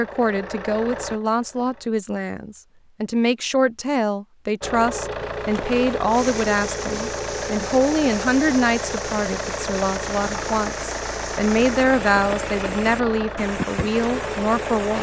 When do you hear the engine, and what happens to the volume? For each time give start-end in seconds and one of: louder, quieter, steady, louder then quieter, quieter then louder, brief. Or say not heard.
0.0-1.9 brief
4.6-14.9 steady.